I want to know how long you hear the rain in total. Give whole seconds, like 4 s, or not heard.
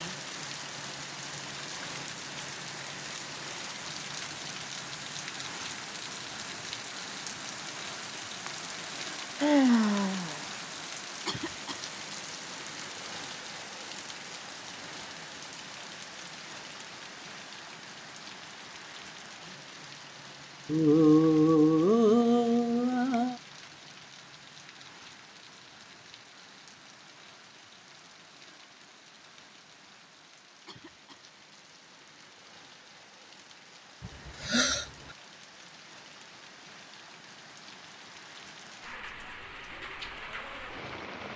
41 s.